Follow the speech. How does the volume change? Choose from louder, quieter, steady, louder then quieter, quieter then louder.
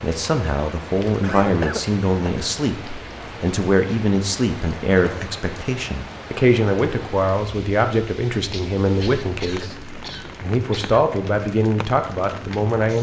steady.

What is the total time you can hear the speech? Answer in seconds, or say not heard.
13 s.